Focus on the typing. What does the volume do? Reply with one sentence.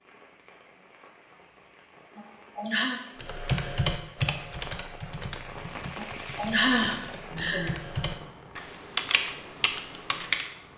The volume of the typing goes down, then up.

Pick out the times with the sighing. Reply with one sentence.
The sighing can be heard from 2.1 to 3.0 s and from 6.0 to 7.8 s.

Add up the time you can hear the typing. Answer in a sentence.
You can hear the typing for 7 seconds altogether.